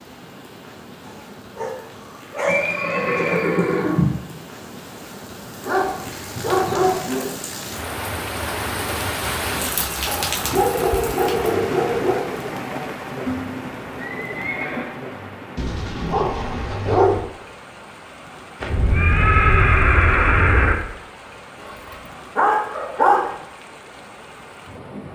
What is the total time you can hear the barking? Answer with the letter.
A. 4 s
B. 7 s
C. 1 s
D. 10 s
D.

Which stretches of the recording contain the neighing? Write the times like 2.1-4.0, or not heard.
2.5-4.2, 13.2-14.9, 18.6-20.8.